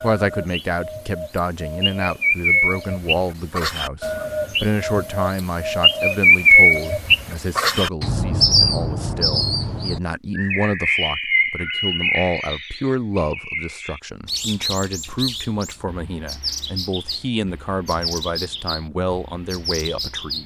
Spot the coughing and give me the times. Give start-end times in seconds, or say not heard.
not heard.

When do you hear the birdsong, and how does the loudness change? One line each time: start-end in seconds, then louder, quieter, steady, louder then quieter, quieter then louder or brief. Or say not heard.
0.0-20.4 louder then quieter.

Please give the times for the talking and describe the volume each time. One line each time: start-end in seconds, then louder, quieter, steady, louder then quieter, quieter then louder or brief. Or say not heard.
0.0-20.4 steady.